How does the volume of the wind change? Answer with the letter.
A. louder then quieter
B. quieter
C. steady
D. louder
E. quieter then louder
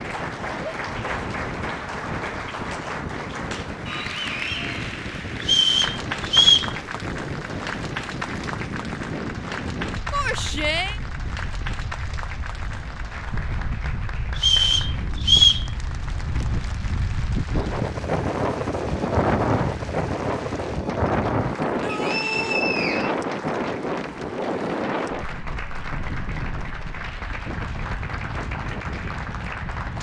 A.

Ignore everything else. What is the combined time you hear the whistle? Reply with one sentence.
The whistle can be heard for 4 seconds in total.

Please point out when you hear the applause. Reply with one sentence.
You can hear the applause from 0.0 to 29.9 s.